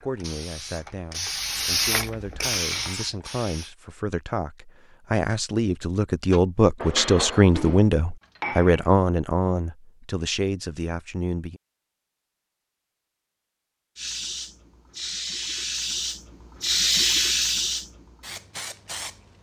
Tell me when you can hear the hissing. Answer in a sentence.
You can hear the hissing from 0.0 to 3.8 s and from 13.9 to 19.3 s.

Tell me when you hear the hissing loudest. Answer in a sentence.
The volume of the hissing peaks at 17 seconds.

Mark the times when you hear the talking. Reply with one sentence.
You can hear the talking from 0.0 to 11.6 s.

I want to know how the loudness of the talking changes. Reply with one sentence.
The volume of the talking goes up, then down.